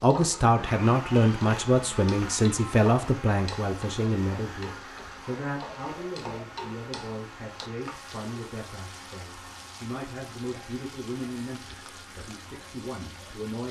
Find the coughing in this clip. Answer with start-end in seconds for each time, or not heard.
not heard.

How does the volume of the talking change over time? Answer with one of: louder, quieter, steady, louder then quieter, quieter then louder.
quieter.